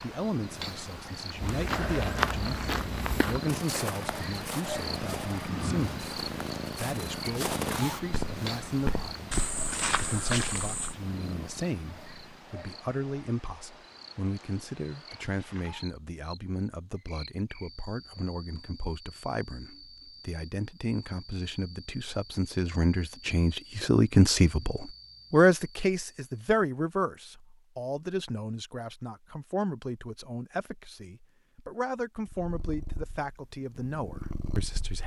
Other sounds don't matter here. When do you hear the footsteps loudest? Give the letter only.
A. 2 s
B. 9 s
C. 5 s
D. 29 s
A.